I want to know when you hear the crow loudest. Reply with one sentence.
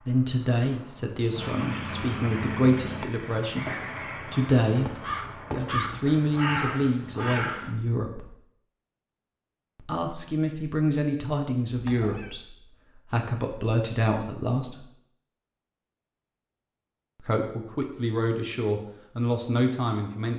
The volume of the crow peaks at 7 seconds.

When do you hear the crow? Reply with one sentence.
You can hear the crow from 2.2 to 7.8 s.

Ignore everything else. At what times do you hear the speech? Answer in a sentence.
You can hear the speech from 0.0 to 8.3 s, from 9.8 to 14.8 s and from 17.2 to 20.3 s.